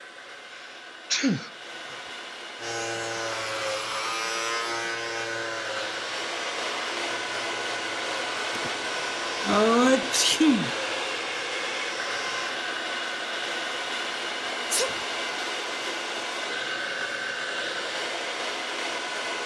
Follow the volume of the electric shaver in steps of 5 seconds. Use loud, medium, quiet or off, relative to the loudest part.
loud, medium, medium, off.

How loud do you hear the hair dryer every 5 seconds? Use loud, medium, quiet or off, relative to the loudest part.
medium, loud, loud, loud.